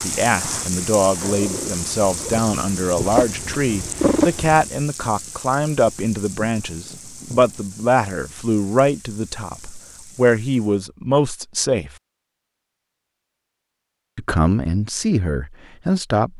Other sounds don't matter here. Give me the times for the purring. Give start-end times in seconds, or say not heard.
0.2-4.7.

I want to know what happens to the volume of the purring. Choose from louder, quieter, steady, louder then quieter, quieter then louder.
louder.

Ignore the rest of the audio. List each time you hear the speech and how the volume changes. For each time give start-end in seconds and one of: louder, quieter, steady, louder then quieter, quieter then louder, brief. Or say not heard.
0.0-11.9 steady
14.2-16.3 brief.